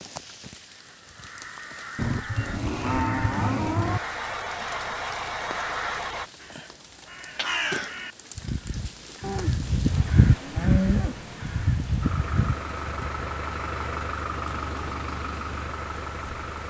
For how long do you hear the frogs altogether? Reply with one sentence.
The frogs can't be heard in this clip.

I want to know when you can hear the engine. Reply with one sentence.
You can hear the engine from 2.4 to 6.3 s and from 12.0 to 16.6 s.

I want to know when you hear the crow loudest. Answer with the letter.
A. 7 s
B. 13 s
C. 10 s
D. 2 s
C.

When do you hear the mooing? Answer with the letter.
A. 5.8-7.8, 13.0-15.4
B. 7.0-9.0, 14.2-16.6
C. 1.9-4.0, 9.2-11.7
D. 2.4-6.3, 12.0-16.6
C.